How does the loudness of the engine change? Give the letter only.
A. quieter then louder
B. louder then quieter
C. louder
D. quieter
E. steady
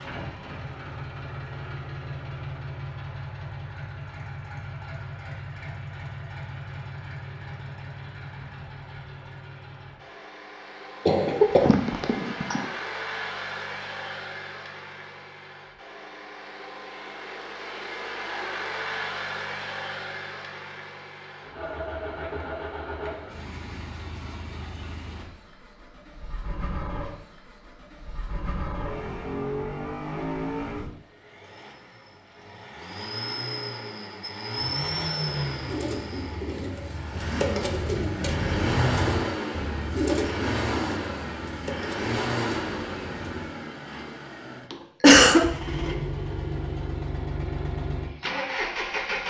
C.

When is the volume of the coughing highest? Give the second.
45 s.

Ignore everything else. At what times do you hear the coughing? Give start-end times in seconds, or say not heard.
11.1-12.6, 44.7-45.5.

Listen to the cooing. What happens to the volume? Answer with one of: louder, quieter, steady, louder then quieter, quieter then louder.
louder then quieter.